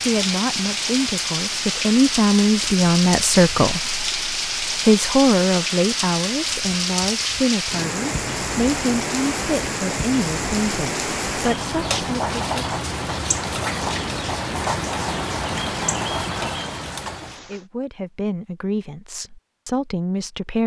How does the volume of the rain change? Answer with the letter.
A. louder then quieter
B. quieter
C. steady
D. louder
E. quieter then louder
C.